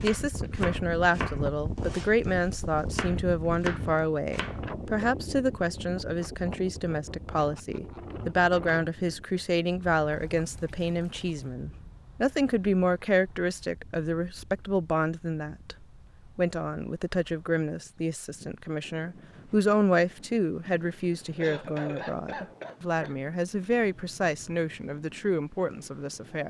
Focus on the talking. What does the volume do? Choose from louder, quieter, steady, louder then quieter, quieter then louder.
steady.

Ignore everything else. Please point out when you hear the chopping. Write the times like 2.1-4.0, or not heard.
0.0-4.5.